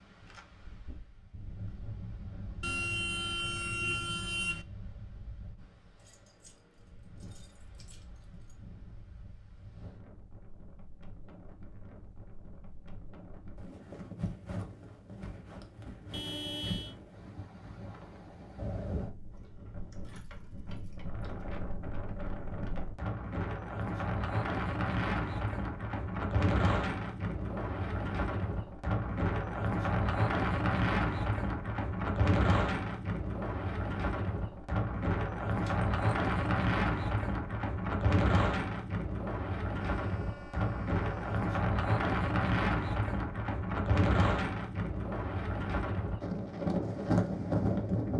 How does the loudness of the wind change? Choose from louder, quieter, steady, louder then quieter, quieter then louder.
louder.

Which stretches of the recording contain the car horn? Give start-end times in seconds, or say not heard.
2.6-4.7, 16.1-16.9, 39.9-41.4.